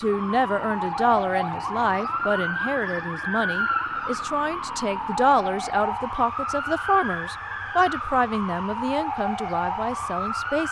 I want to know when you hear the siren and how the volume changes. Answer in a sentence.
You can hear the siren from 0.0 to 10.6 s, at a steady volume.